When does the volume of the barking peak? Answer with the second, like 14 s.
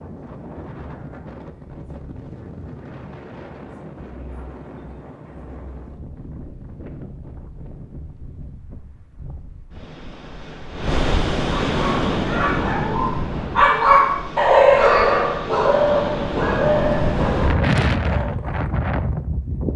15 s.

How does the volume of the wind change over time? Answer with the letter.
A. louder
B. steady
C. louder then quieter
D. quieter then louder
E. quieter
A.